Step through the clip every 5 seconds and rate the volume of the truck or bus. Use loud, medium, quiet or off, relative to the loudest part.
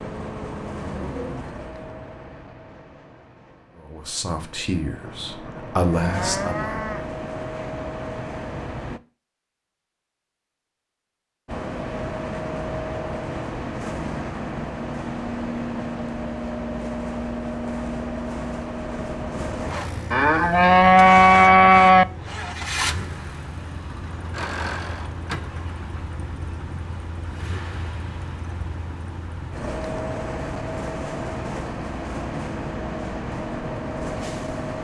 medium, loud, loud, loud, loud, medium, loud.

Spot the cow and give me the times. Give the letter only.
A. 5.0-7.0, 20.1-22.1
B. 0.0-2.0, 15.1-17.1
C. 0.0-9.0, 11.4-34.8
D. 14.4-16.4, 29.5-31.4
A.